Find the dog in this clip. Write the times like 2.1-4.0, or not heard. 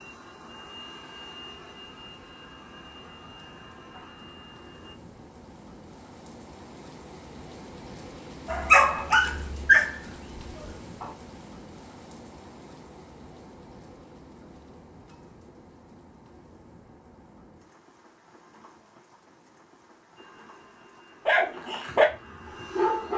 8.4-11.1, 21.2-23.1.